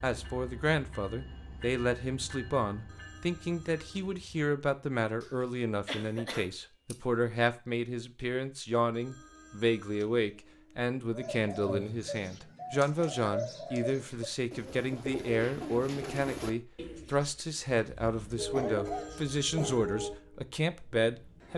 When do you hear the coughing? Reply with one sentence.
The coughing can be heard from 5.2 to 7.0 s and from 18.5 to 19.9 s.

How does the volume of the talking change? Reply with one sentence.
The volume of the talking stays about the same.